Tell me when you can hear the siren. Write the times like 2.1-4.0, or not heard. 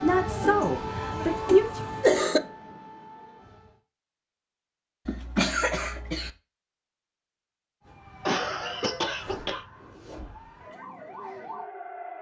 0.0-3.8, 7.8-12.1.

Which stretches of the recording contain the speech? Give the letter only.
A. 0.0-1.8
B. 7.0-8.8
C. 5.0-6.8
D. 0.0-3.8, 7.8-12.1
A.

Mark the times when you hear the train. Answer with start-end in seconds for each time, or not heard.
not heard.